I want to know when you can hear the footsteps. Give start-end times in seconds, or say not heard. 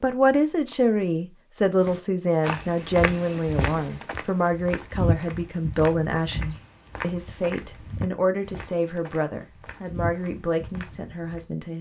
1.8-11.4.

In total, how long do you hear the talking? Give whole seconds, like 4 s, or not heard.
12 s.